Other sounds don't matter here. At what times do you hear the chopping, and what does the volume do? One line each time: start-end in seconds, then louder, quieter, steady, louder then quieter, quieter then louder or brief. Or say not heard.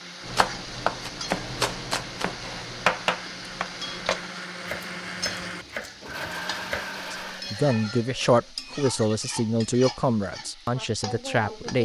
0.2-6.9 quieter.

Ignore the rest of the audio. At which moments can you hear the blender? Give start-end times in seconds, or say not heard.
0.0-8.6.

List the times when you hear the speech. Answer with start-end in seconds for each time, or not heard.
7.1-11.8.